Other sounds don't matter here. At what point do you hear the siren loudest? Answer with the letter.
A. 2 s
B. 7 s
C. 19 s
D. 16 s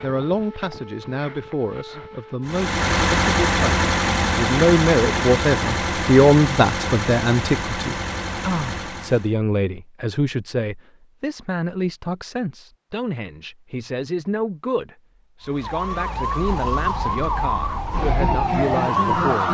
C.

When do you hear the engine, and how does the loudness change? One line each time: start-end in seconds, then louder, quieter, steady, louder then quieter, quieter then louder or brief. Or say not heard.
2.5-9.3 quieter.